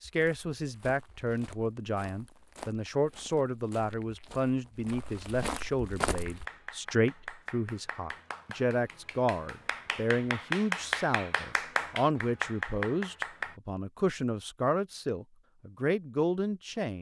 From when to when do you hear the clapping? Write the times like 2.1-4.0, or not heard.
6.1-13.6.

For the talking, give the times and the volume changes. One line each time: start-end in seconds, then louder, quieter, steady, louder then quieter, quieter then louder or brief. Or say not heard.
0.0-16.9 steady.